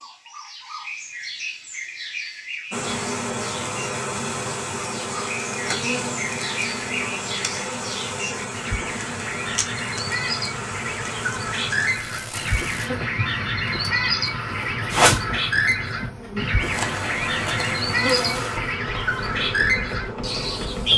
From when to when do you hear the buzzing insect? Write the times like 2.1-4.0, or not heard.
2.7-20.9.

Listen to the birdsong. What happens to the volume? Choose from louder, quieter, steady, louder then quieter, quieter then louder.
louder.